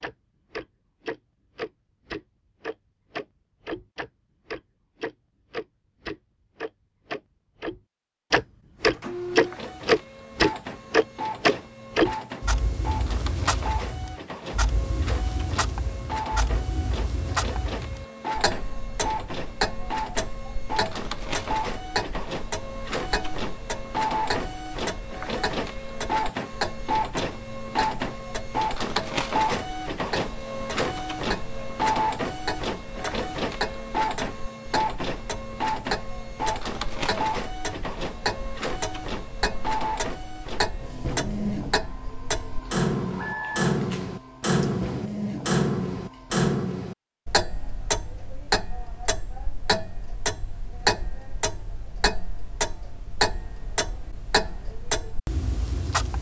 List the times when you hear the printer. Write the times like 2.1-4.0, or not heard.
8.9-46.5.